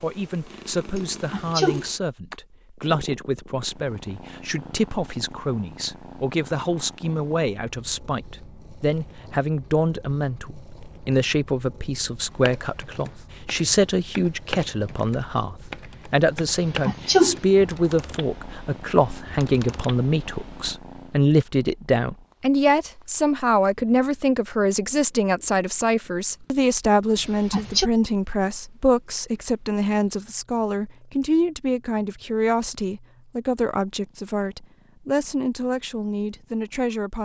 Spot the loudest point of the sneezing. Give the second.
17 s.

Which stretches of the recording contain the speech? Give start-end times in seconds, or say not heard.
0.0-37.2.